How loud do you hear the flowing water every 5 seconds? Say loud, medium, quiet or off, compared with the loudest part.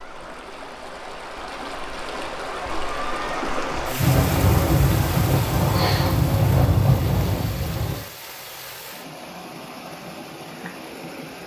loud, medium, medium.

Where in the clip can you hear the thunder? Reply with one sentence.
You can hear the thunder from 4.0 to 8.0 s.